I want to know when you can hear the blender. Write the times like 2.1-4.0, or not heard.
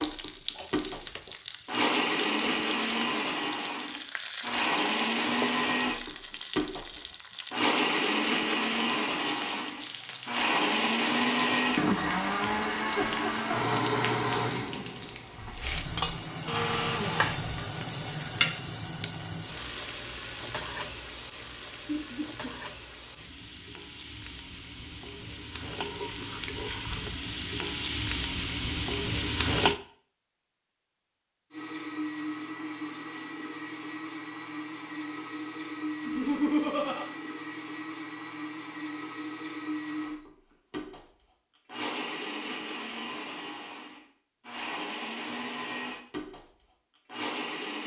0.0-17.4, 31.5-47.8.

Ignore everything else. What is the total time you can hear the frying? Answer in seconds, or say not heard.
30 s.